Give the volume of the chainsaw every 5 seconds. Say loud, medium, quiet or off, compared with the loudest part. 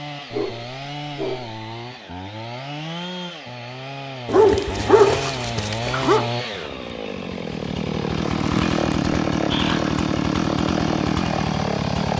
medium, loud, loud.